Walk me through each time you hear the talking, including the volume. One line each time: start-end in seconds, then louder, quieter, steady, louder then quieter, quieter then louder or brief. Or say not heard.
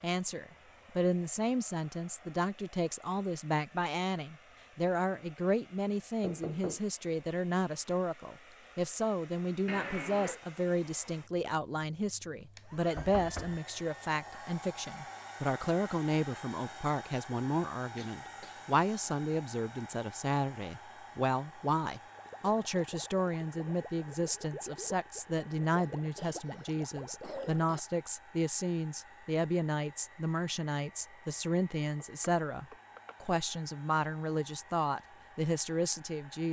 0.0-36.4 steady.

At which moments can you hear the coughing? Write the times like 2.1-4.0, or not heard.
9.7-10.4, 17.9-18.7, 25.8-27.8.